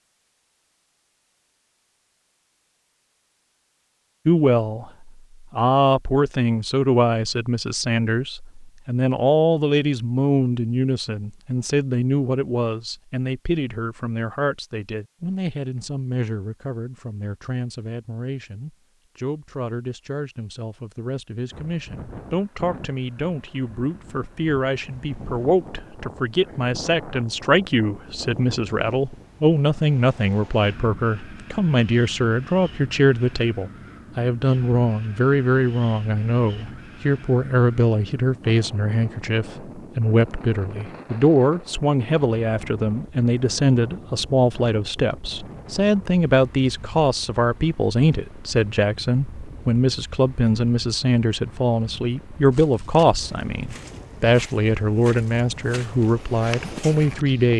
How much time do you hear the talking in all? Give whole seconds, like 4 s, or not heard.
53 s.